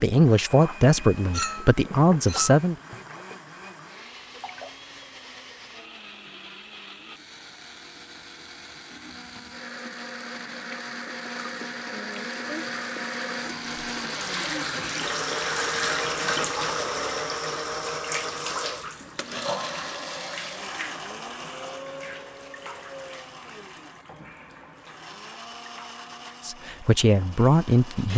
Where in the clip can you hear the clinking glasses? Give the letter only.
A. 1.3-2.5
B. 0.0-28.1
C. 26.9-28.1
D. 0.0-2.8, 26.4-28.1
A.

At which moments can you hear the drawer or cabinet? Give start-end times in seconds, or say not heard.
not heard.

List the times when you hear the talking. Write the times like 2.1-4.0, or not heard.
0.0-2.8, 26.4-28.1.